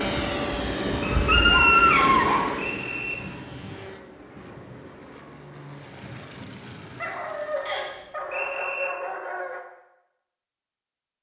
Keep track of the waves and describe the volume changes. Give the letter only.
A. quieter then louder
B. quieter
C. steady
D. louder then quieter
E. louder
B.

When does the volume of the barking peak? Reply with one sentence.
The loudest moment of the barking is at 2 seconds.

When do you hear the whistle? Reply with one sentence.
You can hear the whistle from 1.9 to 3.1 s and from 7.7 to 8.9 s.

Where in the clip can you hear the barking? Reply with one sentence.
The barking can be heard from 1.0 to 2.5 s and from 7.0 to 9.6 s.